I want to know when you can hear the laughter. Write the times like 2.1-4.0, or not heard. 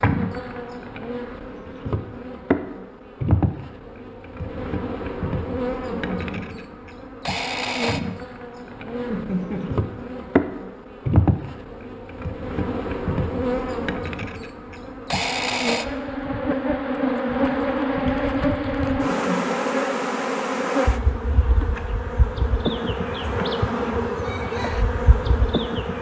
5.9-6.7, 9.1-9.8, 19.1-19.6.